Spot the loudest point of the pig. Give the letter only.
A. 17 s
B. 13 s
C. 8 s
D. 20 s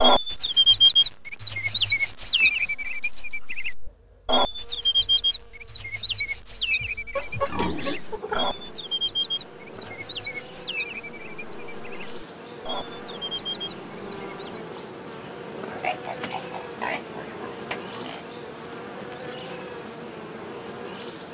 C.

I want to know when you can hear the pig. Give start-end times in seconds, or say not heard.
7.2-8.7, 15.8-18.2.